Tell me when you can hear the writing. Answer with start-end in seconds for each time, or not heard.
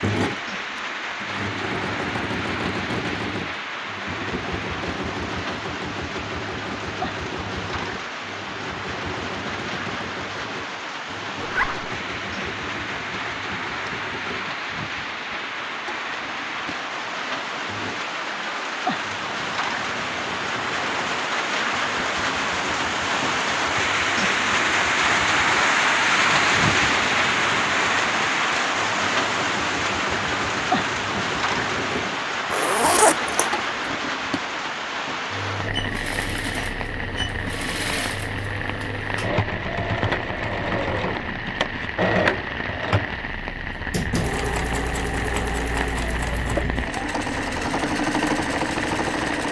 not heard.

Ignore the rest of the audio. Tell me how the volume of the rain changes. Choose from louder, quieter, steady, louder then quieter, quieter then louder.
louder then quieter.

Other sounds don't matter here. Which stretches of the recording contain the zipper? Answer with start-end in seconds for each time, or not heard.
11.3-11.9, 32.5-33.5.